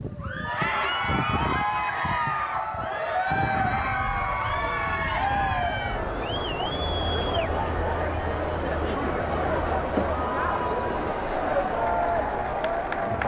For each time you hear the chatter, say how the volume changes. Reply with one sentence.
The chatter can be heard from 0.1 to 13.2 s, at a steady volume.